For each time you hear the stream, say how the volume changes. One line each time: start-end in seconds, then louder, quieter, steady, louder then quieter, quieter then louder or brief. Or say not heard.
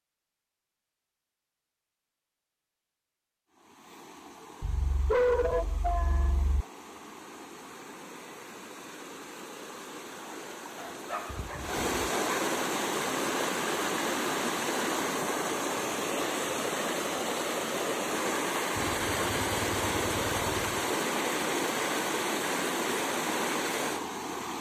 3.5-24.5 louder.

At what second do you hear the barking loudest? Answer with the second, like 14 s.
5 s.